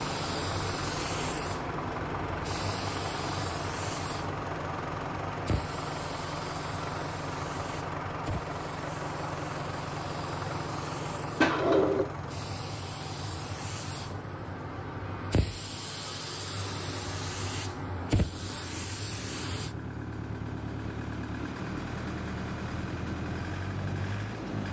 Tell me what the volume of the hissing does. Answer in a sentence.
The volume of the hissing goes down, then up.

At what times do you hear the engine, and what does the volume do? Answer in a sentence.
You can hear the engine from 0.0 to 24.6 s, getting quieter then louder.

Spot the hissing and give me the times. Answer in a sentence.
The hissing can be heard from 0.0 to 19.8 s.